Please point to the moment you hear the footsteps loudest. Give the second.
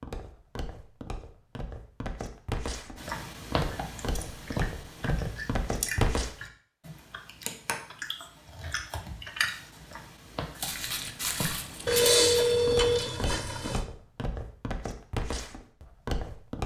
6 s.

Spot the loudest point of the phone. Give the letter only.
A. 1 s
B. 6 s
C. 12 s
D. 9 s
C.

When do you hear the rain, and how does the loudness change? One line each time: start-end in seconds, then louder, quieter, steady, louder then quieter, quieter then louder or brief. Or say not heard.
not heard.